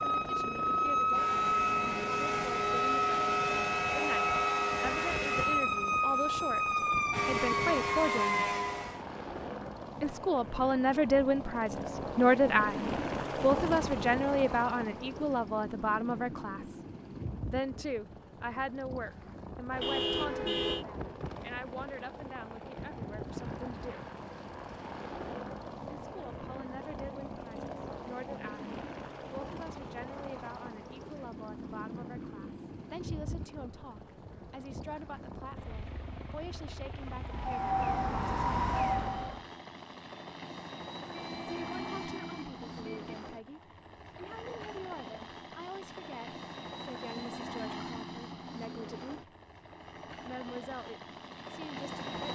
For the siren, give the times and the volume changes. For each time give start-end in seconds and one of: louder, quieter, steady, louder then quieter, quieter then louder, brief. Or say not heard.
0.0-9.0 steady
37.2-39.5 brief.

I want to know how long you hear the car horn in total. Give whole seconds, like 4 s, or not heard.
3 s.